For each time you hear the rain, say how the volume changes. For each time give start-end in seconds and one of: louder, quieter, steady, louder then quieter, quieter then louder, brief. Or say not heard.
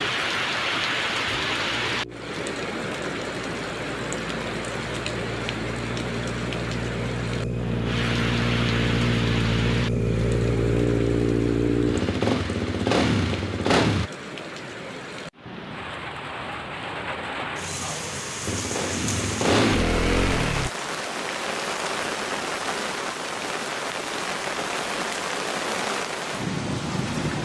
0.0-27.4 quieter then louder.